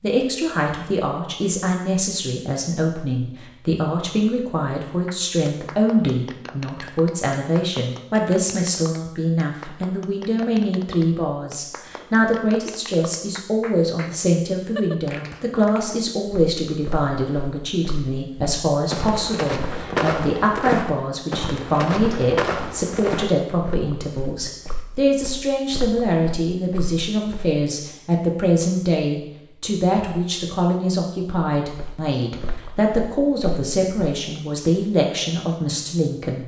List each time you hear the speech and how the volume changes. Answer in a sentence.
You can hear the speech from 0.0 to 36.4 s, at a steady volume.